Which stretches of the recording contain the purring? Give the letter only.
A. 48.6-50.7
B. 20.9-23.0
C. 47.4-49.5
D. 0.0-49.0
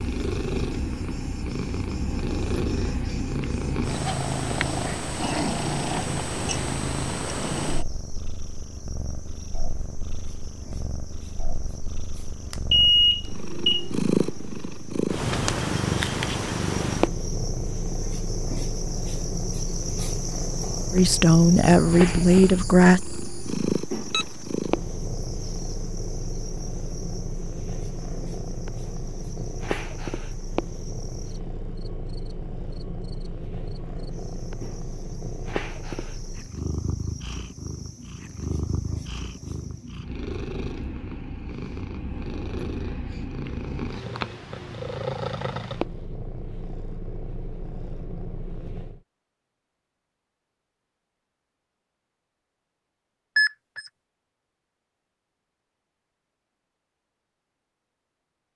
D.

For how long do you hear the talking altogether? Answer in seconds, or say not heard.
2 s.